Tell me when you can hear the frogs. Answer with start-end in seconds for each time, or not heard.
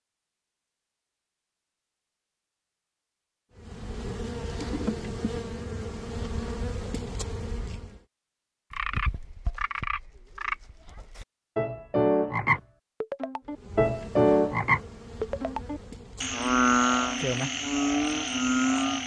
8.7-19.0.